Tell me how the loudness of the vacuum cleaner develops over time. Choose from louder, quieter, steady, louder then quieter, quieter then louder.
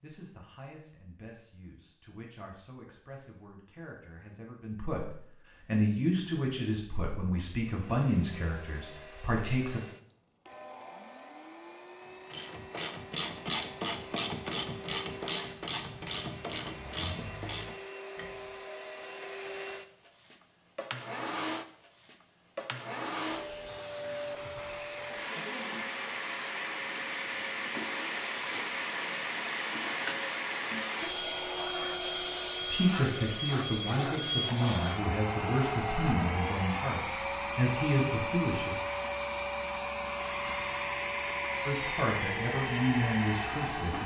louder.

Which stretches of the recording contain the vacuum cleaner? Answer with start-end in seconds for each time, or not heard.
7.5-44.0.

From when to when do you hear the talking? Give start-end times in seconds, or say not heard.
0.0-9.8, 32.6-38.8, 41.6-44.0.